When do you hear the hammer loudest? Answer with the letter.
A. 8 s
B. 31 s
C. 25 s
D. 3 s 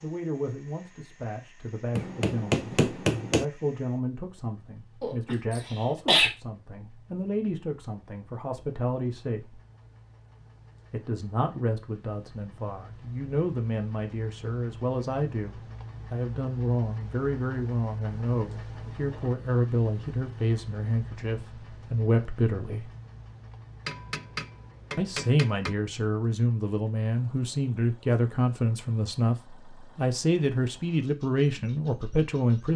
D.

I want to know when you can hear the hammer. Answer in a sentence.
You can hear the hammer from 1.9 to 3.5 s and from 23.9 to 25.8 s.